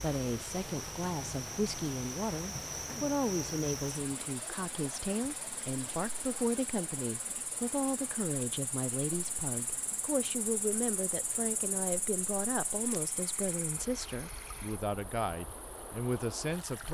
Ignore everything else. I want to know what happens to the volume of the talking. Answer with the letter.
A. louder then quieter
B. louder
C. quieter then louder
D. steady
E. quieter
D.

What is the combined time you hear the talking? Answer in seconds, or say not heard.
17 s.